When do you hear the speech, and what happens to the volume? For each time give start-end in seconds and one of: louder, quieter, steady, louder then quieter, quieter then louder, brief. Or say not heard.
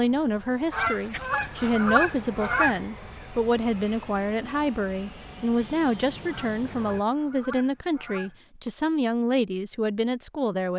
0.0-10.7 steady.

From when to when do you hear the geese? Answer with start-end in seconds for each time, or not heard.
0.7-2.8, 6.2-8.4.